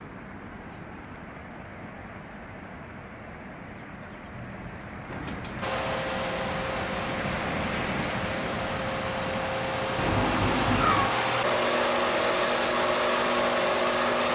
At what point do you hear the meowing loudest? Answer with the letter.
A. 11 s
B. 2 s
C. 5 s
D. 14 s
A.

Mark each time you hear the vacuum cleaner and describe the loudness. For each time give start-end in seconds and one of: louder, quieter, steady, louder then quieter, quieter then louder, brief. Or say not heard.
5.6-14.2 louder.